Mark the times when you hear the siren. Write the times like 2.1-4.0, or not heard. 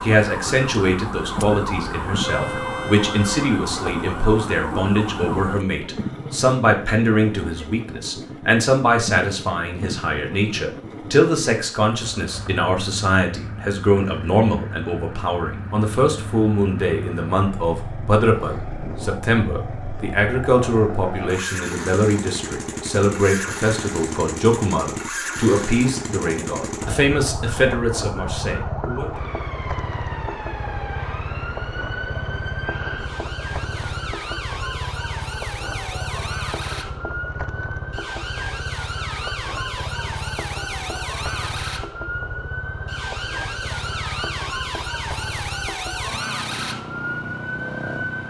0.0-5.7, 26.9-48.2.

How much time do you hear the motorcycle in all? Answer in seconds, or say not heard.
48 s.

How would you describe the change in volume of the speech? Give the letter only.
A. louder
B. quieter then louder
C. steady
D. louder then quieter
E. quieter
C.